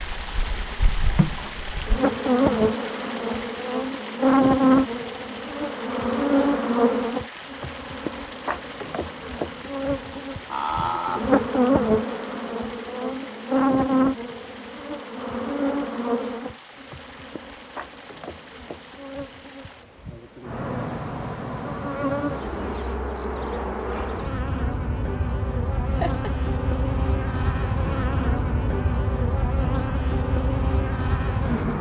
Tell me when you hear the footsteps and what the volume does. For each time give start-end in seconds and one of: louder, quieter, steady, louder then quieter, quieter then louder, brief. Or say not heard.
not heard.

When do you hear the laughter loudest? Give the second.
11 s.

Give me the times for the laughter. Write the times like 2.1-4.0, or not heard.
10.4-11.4, 25.9-26.4.